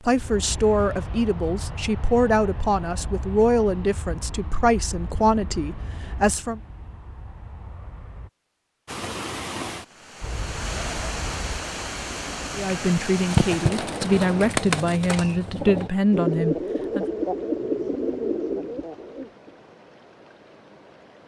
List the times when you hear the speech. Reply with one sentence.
You can hear the speech from 0.1 to 6.6 s and from 12.6 to 17.1 s.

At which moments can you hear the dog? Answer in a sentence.
The dog can't be heard in this clip.